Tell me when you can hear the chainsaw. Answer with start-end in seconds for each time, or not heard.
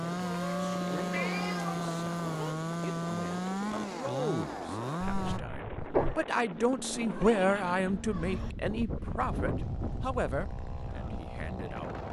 0.0-5.4, 9.4-12.0.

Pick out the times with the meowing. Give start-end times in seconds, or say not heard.
0.2-2.5, 6.5-8.6.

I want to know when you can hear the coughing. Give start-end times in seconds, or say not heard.
5.0-6.2.